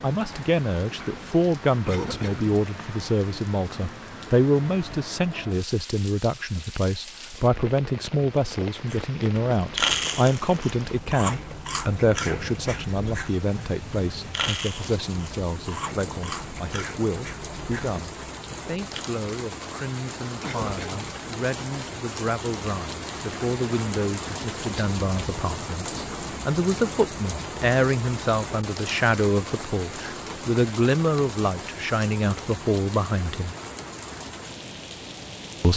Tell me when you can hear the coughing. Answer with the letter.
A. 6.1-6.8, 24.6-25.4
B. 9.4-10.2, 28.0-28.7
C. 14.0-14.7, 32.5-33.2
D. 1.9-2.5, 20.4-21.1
D.